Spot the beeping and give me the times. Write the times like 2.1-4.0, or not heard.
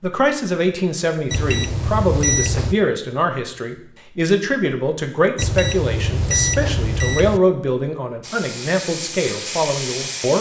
1.3-2.8, 5.3-7.4.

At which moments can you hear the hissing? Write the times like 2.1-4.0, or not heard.
8.2-10.3.